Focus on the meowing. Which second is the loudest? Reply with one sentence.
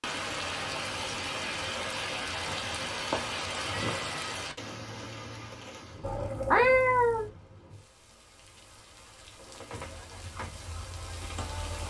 The loudest moment of the meowing is at 7 seconds.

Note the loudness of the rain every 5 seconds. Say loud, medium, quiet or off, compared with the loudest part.
loud, quiet, medium.